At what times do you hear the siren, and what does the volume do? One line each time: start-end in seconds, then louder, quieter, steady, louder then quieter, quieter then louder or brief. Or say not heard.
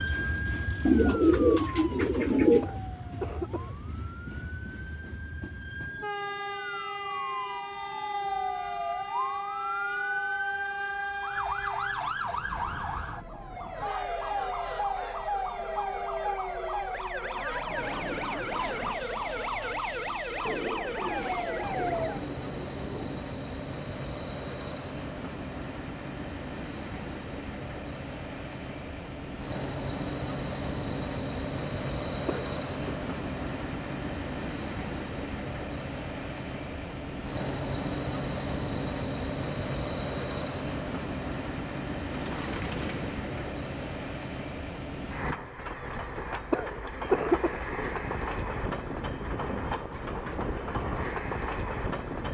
0.0-22.3 louder.